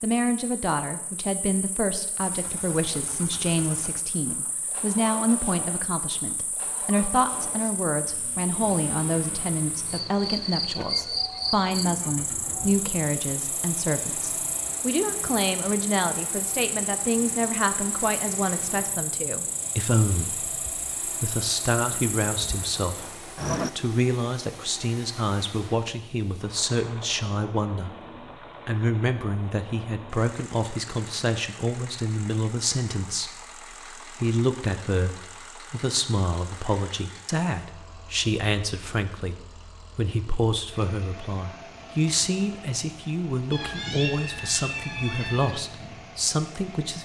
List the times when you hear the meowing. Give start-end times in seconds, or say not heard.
43.5-45.5.